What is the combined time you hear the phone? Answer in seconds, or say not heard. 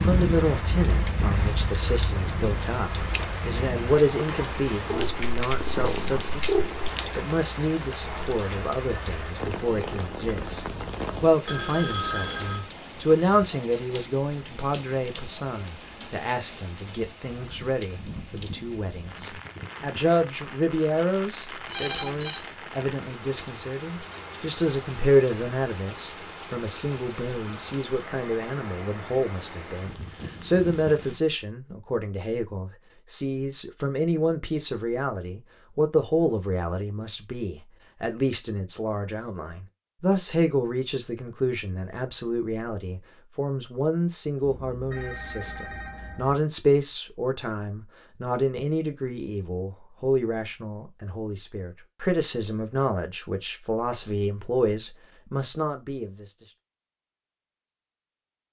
4 s.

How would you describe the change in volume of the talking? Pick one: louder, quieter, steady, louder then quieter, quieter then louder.
steady.